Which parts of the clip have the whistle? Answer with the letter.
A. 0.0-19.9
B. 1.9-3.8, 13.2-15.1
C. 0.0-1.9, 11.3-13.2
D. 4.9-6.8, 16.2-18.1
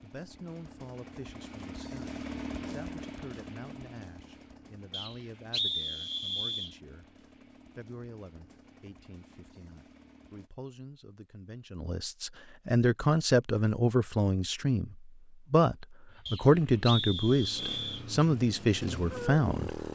D.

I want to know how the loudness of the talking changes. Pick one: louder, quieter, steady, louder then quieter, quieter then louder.
louder.